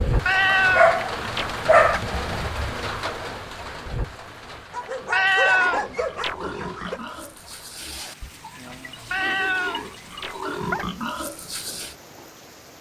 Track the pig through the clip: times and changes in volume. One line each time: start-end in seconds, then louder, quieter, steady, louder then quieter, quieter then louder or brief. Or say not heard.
5.5-11.9 quieter then louder.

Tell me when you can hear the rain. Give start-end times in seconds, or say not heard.
0.0-12.7.